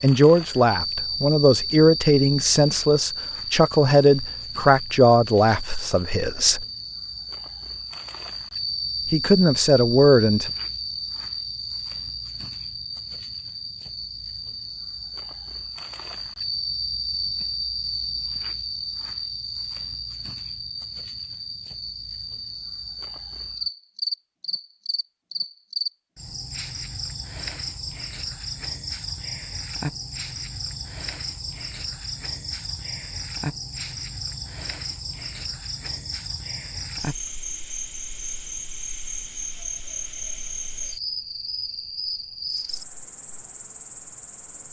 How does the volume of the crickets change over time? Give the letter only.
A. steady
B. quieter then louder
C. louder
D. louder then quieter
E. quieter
A.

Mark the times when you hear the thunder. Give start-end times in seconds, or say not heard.
not heard.